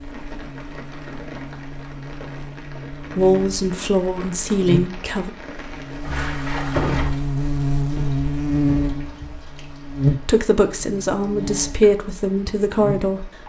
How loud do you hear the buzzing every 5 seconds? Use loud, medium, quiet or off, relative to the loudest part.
medium, loud, loud.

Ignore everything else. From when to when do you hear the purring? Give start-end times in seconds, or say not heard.
not heard.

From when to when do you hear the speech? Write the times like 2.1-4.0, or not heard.
3.1-5.3, 10.2-13.3.